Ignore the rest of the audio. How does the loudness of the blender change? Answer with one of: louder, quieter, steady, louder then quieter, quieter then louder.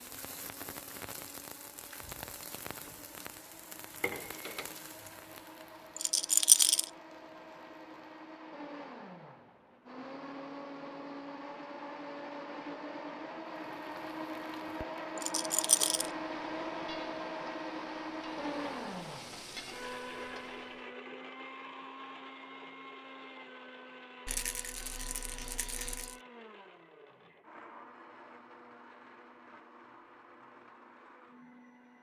louder then quieter.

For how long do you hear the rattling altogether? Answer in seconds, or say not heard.
4 s.